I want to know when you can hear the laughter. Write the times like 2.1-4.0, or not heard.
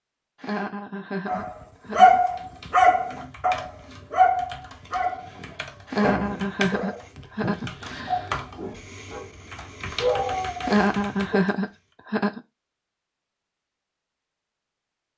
0.4-2.2, 5.8-8.3, 10.6-12.4.